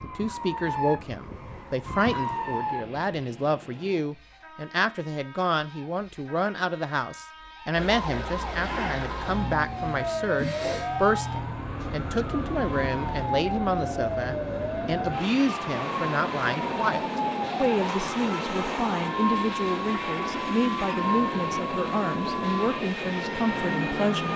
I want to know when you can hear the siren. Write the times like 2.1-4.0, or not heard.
0.0-3.0, 7.8-24.3.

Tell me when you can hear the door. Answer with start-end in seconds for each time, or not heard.
10.3-10.9.